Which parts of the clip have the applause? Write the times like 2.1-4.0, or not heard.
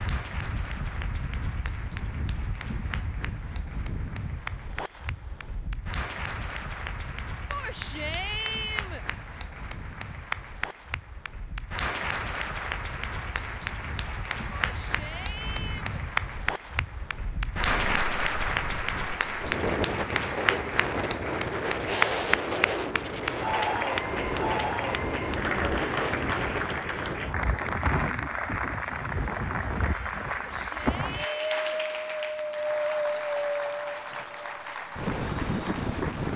0.0-36.3.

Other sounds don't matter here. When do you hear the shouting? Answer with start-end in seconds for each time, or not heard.
7.5-9.1, 14.5-15.9, 30.3-31.8.